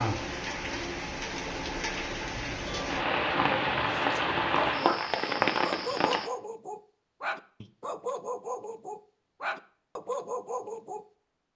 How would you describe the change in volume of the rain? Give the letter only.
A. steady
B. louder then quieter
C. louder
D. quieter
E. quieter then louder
C.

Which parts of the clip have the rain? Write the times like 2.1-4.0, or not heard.
0.0-6.3.